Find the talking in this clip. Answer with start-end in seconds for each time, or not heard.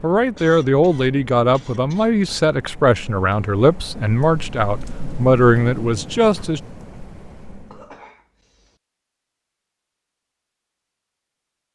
0.0-6.6.